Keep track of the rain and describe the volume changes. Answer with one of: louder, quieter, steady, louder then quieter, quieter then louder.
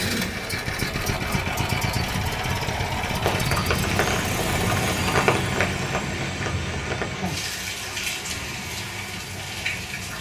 quieter.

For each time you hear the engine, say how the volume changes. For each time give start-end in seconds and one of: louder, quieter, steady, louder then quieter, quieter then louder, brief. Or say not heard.
0.0-10.1 quieter.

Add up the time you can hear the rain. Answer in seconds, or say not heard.
7 s.